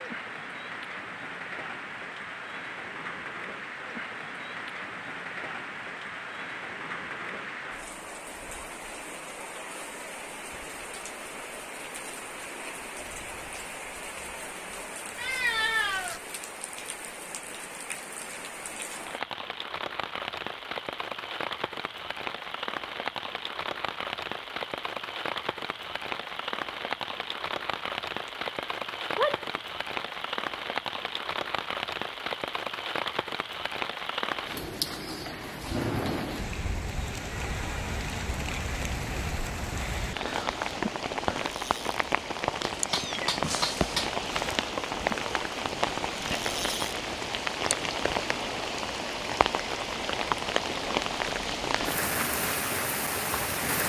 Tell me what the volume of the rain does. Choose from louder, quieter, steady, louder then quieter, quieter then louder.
louder.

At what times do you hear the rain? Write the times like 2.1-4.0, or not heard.
0.0-53.8.